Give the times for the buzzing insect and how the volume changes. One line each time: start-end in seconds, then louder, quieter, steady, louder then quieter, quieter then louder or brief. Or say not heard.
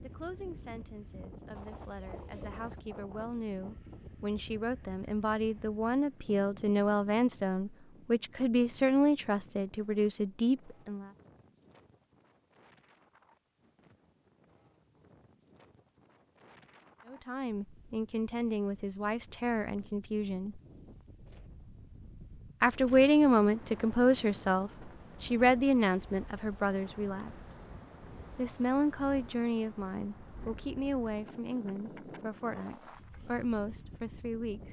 not heard.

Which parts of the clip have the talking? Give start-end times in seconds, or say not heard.
0.0-11.1, 17.1-20.6, 22.6-27.3, 28.4-34.6.